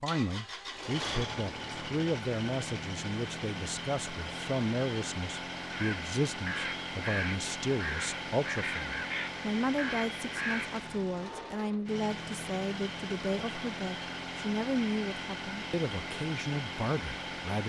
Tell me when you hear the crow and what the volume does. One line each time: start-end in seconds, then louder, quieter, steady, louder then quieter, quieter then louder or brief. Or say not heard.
5.7-10.7 steady.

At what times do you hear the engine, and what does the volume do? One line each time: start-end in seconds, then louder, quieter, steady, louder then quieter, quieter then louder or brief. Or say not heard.
0.0-17.6 steady.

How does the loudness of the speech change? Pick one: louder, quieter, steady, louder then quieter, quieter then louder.
steady.